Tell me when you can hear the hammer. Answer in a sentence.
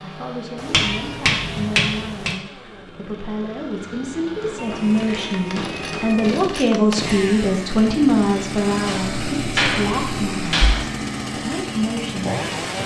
You can hear the hammer from 0.7 to 2.4 s, from 4.4 to 6.1 s and from 8.8 to 10.8 s.